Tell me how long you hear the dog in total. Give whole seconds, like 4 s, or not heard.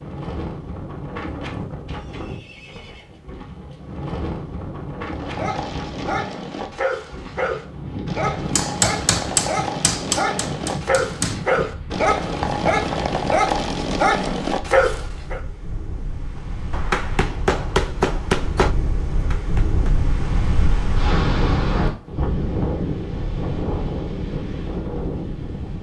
10 s.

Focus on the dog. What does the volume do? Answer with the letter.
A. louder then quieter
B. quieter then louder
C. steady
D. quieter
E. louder
E.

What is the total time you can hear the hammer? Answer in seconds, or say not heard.
6 s.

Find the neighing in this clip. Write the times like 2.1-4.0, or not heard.
1.9-3.2.